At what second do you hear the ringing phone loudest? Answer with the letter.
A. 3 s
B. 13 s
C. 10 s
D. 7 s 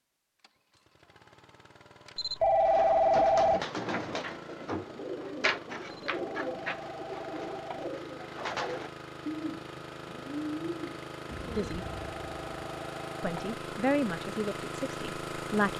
A.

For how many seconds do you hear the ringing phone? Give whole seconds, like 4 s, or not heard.
5 s.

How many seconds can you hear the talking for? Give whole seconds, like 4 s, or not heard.
3 s.